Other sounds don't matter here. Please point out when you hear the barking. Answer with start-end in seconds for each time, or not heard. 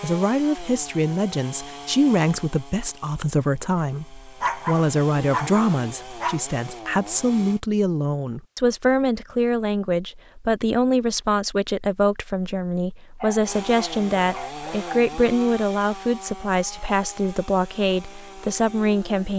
4.4-6.4, 13.2-15.1.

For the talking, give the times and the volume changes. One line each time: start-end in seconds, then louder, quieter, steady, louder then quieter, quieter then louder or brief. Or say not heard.
0.0-19.3 steady.